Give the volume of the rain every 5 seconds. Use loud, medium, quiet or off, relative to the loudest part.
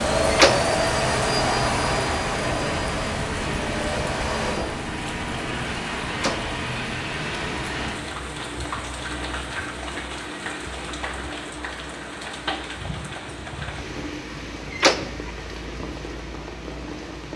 loud, loud, medium, medium.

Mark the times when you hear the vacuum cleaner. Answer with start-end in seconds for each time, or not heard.
0.0-4.6.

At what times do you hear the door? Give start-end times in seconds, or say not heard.
0.2-0.7, 6.1-6.5, 14.7-15.1.